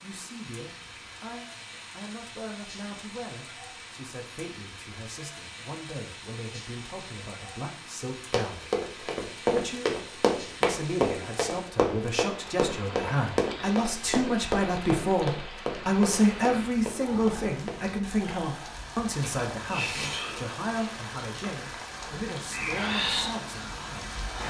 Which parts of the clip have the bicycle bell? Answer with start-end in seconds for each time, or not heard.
not heard.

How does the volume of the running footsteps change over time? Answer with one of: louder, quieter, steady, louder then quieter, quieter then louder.
quieter.